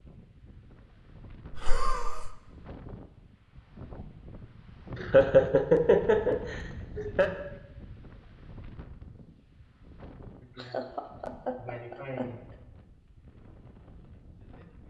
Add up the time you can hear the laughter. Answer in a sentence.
The laughter can be heard for 5 seconds in total.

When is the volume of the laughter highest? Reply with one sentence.
The volume of the laughter peaks at 5 seconds.